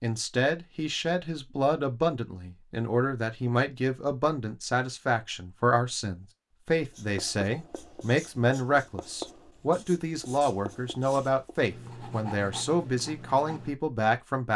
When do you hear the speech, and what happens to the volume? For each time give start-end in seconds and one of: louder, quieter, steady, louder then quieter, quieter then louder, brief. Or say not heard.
0.0-14.5 steady.